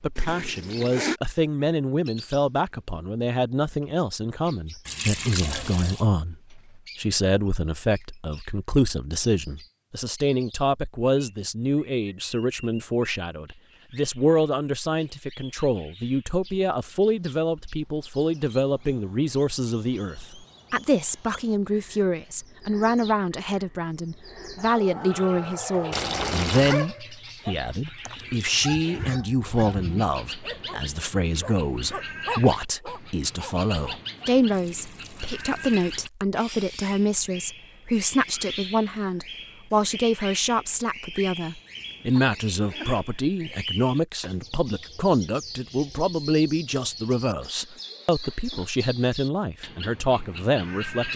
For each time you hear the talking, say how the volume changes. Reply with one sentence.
The talking can be heard from 0.0 to 51.1 s, at a steady volume.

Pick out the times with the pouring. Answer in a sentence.
The pouring can be heard from 4.8 to 6.0 s, from 25.9 to 26.9 s and from 34.5 to 36.1 s.